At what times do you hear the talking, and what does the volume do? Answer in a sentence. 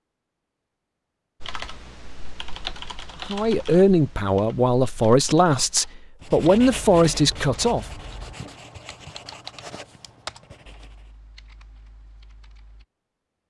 You can hear the talking from 3.2 to 7.8 s, at a steady volume.